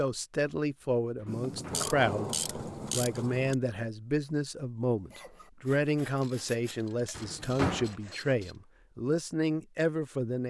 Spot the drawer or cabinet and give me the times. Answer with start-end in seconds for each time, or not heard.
1.2-1.9, 7.2-8.0.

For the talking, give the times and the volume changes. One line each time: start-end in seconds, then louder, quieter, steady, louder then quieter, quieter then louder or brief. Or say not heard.
0.0-10.4 steady.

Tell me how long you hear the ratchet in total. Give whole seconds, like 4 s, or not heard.
5 s.